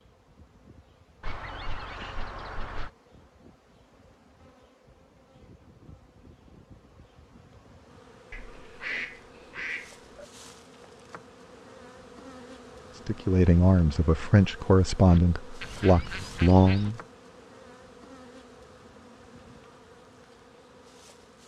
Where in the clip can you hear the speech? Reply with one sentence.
The speech can be heard from 13.1 to 17.0 s.